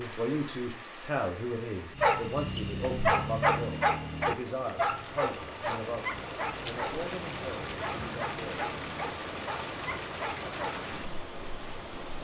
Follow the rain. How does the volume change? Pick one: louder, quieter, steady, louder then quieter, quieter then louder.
louder.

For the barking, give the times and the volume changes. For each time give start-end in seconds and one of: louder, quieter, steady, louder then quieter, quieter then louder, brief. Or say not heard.
1.9-11.2 quieter.